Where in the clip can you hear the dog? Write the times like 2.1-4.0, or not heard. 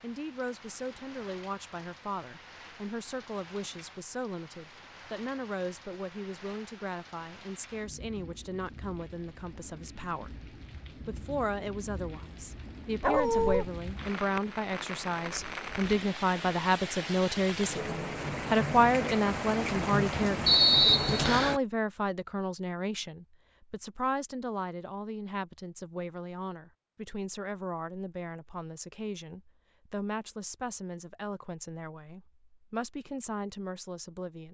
13.0-13.7.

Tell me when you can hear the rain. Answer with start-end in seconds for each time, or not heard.
0.0-21.6.